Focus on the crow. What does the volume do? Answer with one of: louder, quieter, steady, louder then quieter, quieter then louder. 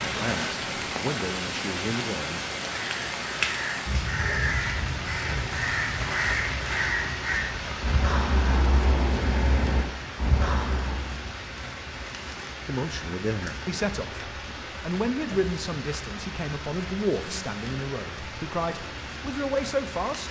steady.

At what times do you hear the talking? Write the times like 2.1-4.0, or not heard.
0.0-2.4, 12.7-20.2.